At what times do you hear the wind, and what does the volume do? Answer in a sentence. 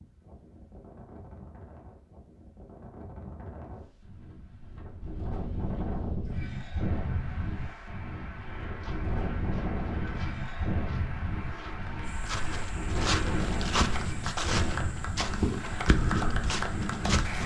The wind can be heard from 0.0 to 17.4 s, getting louder.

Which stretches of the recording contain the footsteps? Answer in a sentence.
You can hear the footsteps from 8.3 to 17.4 s.